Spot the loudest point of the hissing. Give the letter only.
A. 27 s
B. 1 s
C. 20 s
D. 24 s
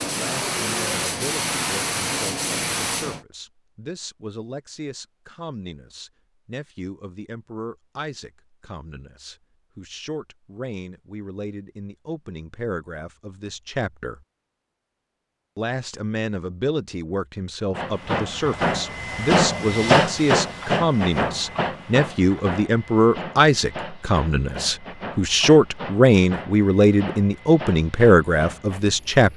C.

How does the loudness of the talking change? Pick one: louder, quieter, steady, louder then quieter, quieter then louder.
louder.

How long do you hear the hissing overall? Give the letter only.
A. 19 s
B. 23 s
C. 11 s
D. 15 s
D.